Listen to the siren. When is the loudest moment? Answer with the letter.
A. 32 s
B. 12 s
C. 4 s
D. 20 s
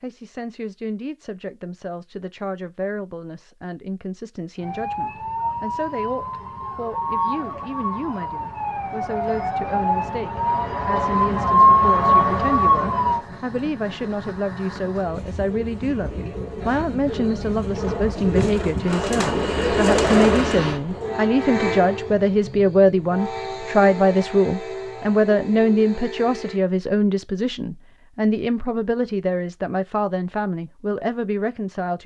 B.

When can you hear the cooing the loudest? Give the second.
20 s.